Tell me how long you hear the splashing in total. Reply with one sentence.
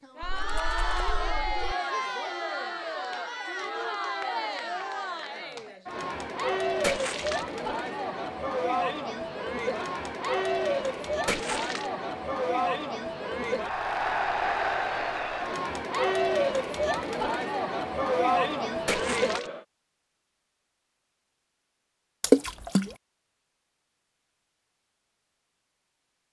The splashing can be heard for 4 seconds in total.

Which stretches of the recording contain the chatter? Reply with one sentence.
The chatter can be heard from 0.0 to 19.6 s.